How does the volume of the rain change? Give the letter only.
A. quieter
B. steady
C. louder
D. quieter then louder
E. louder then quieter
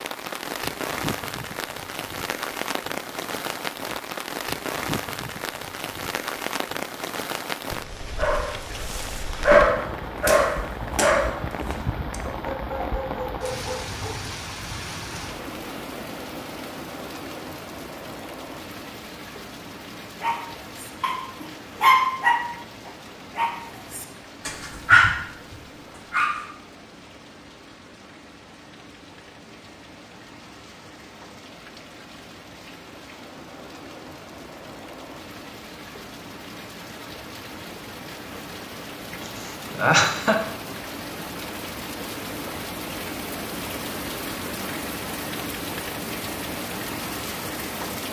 D.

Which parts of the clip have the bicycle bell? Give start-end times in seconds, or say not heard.
not heard.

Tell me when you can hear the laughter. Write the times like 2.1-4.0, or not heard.
39.2-40.4.